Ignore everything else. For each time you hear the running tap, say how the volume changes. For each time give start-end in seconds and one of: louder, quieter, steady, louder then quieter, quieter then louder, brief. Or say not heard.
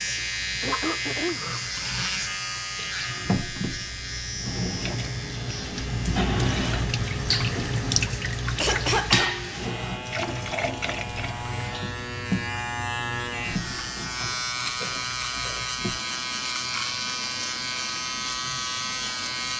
0.0-19.5 louder then quieter.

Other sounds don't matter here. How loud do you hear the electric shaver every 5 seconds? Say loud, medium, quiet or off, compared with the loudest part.
loud, medium, loud, loud.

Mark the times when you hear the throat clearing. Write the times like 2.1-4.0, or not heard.
0.6-1.4, 8.6-9.3, 14.8-15.8.